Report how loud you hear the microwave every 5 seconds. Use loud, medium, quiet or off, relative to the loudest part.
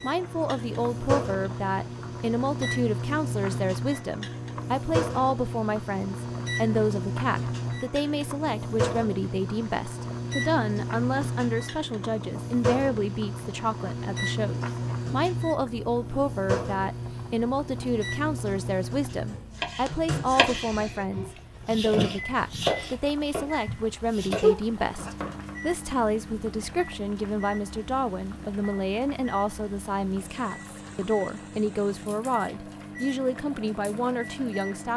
loud, loud, loud, loud, medium, medium, medium.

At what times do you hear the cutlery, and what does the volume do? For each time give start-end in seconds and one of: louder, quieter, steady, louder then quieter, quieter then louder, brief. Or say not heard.
not heard.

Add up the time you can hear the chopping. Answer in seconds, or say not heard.
6 s.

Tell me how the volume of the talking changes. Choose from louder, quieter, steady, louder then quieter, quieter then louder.
steady.